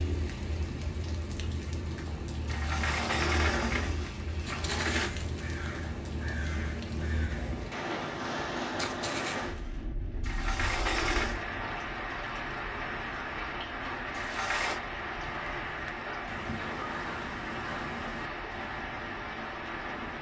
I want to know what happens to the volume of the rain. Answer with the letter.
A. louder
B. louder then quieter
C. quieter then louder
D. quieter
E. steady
E.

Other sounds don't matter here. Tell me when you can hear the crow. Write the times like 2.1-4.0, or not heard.
4.4-9.7, 15.1-20.1.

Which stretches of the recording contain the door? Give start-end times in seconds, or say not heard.
2.5-5.1, 10.2-11.4, 14.2-14.8.